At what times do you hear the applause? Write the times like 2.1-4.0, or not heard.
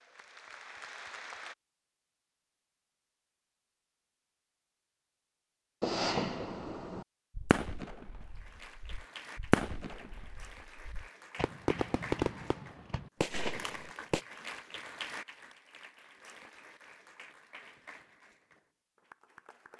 0.0-1.6, 8.2-19.7.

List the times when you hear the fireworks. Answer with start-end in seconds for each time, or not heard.
5.8-14.2.